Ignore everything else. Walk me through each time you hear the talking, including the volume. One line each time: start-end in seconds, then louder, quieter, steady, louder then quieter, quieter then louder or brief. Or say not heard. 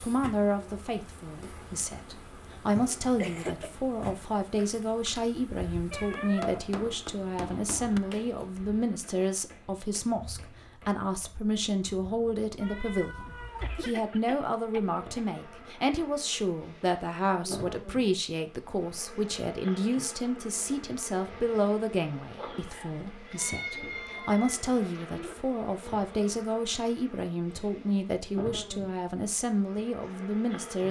0.0-30.8 steady.